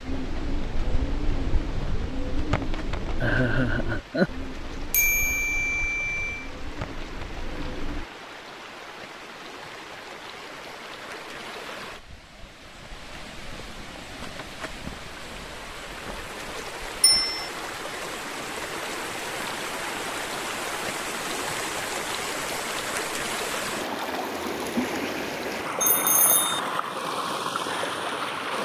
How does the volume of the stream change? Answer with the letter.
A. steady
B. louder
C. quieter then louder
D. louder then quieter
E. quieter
B.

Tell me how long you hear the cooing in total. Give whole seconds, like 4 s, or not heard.
8 s.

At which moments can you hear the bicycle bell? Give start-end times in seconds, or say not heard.
4.9-6.5, 17.0-17.5, 25.8-26.6.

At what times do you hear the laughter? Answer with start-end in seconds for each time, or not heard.
3.2-4.3.